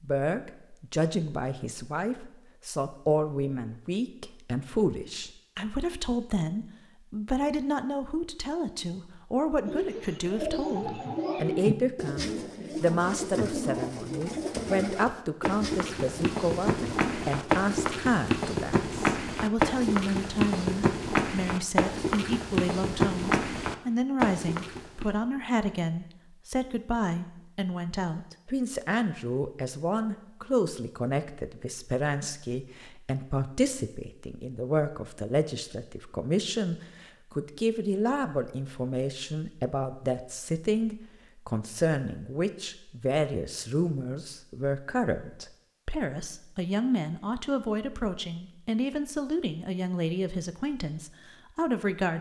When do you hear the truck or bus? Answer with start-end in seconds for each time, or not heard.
not heard.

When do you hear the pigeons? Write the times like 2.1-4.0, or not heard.
9.7-17.7.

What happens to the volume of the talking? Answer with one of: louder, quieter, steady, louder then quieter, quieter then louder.
steady.